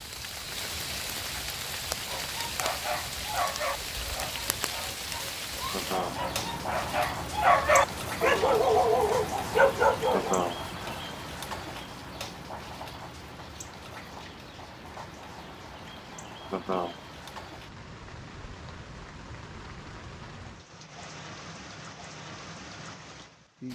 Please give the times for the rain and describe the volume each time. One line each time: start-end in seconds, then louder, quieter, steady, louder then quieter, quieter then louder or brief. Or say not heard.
0.0-23.7 quieter.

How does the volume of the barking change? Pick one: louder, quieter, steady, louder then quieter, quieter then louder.
quieter then louder.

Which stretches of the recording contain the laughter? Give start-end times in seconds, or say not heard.
5.7-6.2, 10.1-10.6, 16.5-16.9.